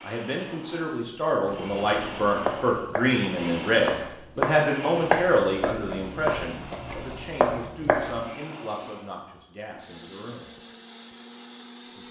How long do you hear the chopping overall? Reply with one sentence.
You can hear the chopping for 7 seconds altogether.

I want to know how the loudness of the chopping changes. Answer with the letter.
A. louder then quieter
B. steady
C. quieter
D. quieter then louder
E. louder
A.